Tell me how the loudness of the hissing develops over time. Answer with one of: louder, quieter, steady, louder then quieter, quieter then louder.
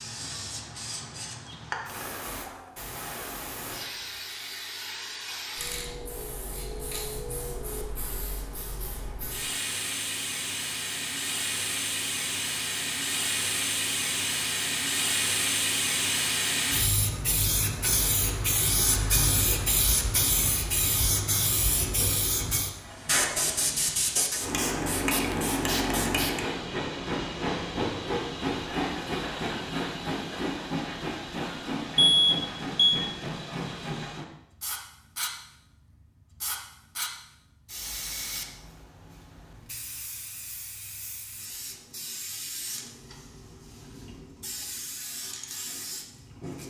louder then quieter.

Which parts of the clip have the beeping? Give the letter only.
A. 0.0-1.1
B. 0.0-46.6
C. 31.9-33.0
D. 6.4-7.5
C.